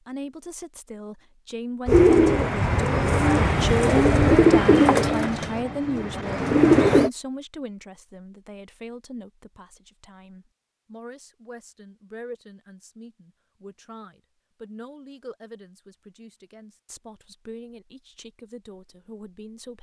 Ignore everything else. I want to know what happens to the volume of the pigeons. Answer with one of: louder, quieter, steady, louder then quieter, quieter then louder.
louder then quieter.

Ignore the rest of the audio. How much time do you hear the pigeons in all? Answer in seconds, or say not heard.
5 s.